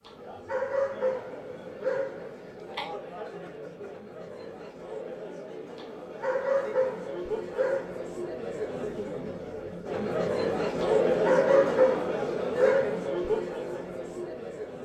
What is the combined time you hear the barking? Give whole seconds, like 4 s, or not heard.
7 s.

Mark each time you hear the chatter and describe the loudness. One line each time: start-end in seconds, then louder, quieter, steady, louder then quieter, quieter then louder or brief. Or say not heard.
0.0-14.7 louder.